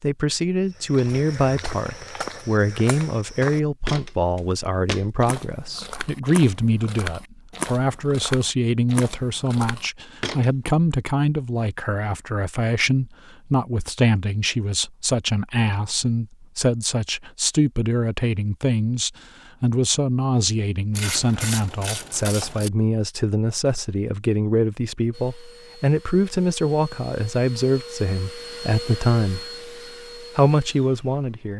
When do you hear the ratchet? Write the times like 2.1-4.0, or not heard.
20.9-22.7.